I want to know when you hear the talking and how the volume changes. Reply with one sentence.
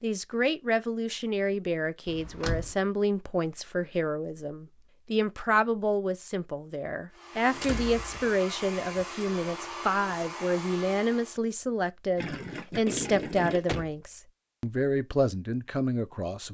The talking can be heard from 0.0 to 16.4 s, at a steady volume.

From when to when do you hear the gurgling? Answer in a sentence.
You can hear the gurgling from 12.2 to 13.8 s.